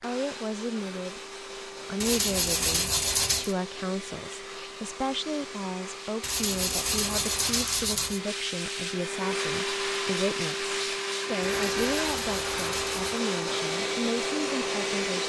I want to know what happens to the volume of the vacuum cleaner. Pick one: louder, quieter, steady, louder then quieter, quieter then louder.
louder.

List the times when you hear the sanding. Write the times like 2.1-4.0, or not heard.
2.0-3.5, 6.2-8.2, 11.4-13.2.